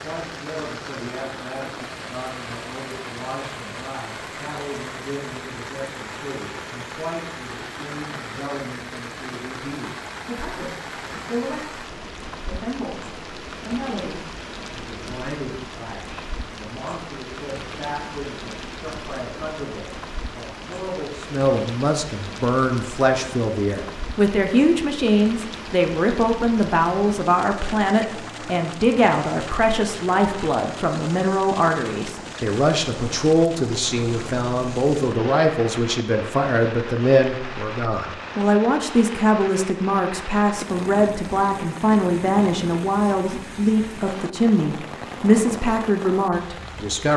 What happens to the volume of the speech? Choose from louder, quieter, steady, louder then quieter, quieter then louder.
louder.